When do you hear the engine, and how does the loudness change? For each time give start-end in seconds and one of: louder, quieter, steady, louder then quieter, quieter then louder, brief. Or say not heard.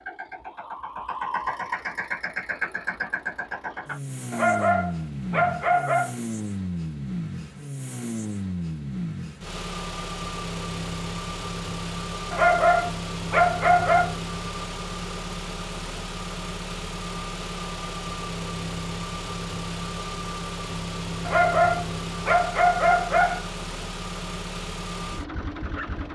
0.0-26.0 steady.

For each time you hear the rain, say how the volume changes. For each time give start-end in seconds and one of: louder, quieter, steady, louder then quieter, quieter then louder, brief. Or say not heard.
not heard.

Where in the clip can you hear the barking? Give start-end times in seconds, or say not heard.
4.3-6.2, 12.3-14.2, 21.2-23.4.